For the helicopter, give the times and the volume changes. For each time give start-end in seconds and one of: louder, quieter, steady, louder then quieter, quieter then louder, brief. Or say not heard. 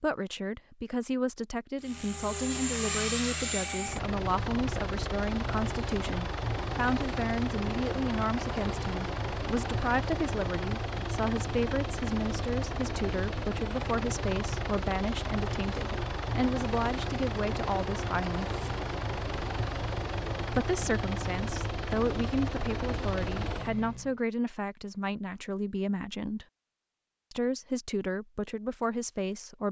1.8-24.1 steady.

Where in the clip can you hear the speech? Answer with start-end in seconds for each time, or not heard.
0.0-18.7, 20.6-26.4, 27.3-29.6.